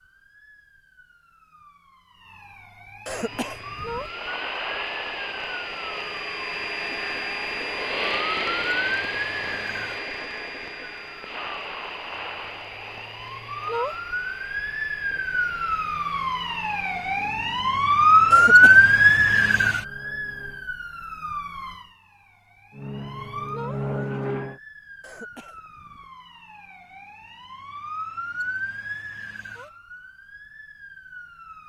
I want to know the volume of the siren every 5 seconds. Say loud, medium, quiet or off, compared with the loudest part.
quiet, quiet, quiet, loud, quiet, quiet, quiet.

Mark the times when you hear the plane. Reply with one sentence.
The plane can be heard from 3.0 to 20.7 s and from 22.8 to 24.6 s.